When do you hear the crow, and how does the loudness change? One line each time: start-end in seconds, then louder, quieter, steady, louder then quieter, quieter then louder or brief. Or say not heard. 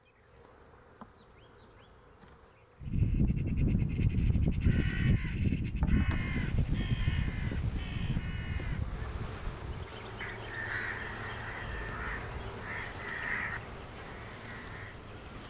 2.8-14.9 quieter.